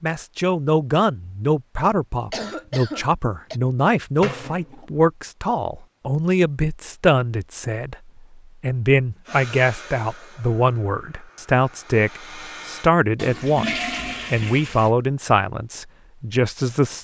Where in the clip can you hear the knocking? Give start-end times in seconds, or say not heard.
not heard.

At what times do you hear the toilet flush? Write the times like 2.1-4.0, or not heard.
4.2-4.8, 13.2-14.9.